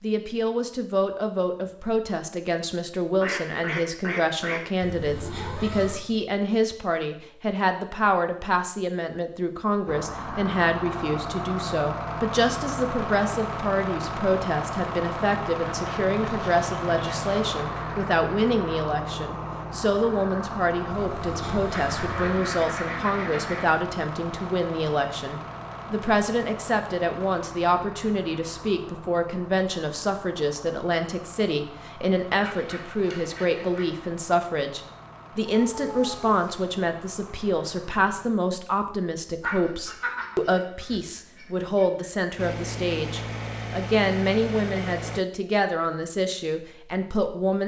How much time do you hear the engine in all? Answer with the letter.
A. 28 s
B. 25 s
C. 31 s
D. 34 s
C.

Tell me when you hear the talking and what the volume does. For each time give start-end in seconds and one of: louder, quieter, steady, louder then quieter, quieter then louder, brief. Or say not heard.
0.0-47.6 steady.